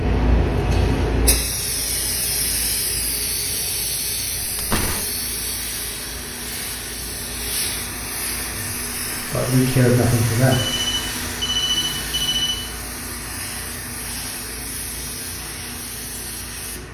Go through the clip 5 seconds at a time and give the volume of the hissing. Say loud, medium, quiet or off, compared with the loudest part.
loud, medium, medium, medium.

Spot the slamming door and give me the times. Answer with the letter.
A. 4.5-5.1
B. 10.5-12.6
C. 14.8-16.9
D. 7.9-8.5
A.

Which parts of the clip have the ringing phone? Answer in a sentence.
The ringing phone can be heard from 10.5 to 12.6 s.